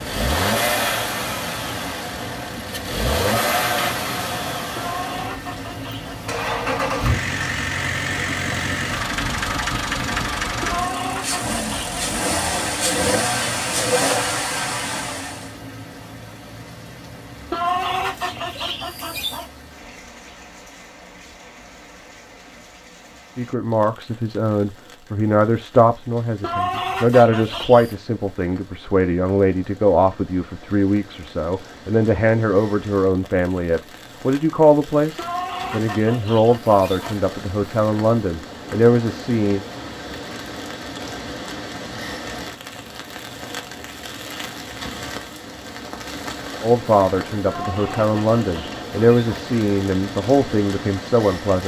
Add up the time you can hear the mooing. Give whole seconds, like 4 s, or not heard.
not heard.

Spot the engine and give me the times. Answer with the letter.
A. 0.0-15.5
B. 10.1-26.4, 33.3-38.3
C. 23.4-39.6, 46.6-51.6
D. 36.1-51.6
A.